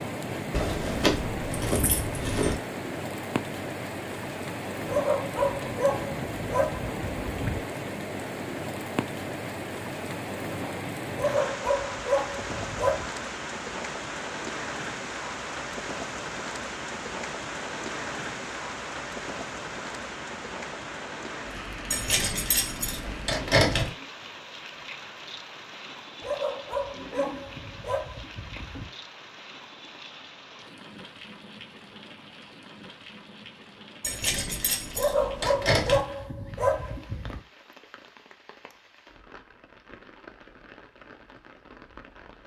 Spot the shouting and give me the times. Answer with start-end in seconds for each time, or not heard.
not heard.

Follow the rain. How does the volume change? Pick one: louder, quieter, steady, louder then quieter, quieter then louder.
quieter.